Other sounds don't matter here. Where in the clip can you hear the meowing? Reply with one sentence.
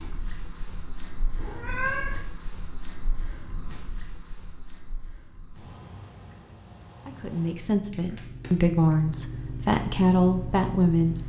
The meowing can be heard from 1.4 to 2.2 s.